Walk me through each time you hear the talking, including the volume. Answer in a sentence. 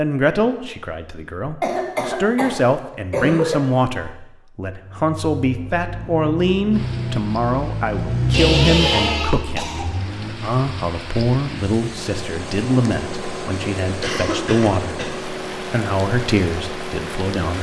You can hear the talking from 0.0 to 17.5 s, at a steady volume.